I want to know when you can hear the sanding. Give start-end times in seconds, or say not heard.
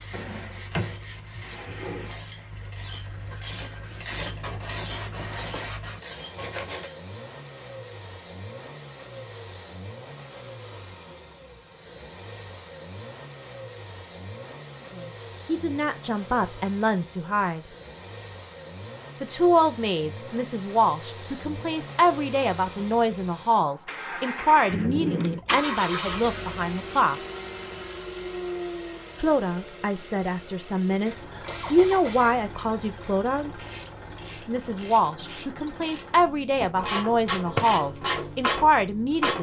0.0-6.9.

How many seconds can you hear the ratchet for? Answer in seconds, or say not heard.
15 s.